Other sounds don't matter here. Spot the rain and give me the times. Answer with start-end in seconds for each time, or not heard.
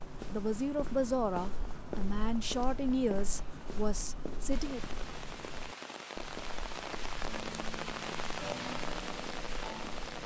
4.5-10.2.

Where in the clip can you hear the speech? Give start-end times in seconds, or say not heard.
0.3-4.8.